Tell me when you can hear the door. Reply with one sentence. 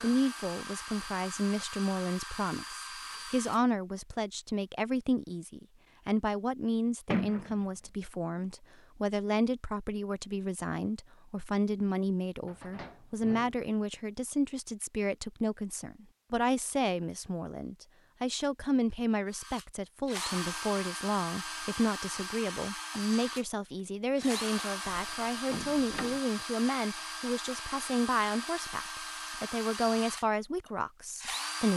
You can hear the door from 7.1 to 7.6 s, from 12.4 to 13.6 s and from 24.9 to 26.2 s.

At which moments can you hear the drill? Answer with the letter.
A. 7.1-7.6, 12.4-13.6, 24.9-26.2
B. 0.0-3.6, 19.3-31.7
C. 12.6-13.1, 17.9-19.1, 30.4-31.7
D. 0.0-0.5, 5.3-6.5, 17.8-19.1
B.